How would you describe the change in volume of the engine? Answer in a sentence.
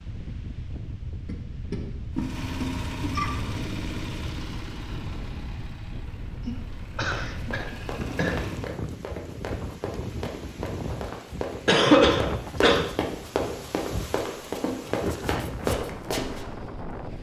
The loudness of the engine goes down, then up.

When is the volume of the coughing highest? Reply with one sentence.
The volume of the coughing peaks at 12 seconds.